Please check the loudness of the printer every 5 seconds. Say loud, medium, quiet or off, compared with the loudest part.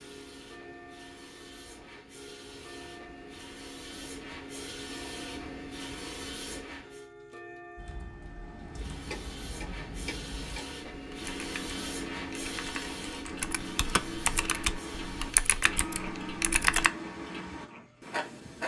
medium, loud, loud, medium.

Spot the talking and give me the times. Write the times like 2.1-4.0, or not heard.
not heard.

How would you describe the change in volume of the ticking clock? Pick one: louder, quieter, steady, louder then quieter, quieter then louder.
louder.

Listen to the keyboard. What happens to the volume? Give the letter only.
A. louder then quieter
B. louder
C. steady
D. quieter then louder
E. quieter
B.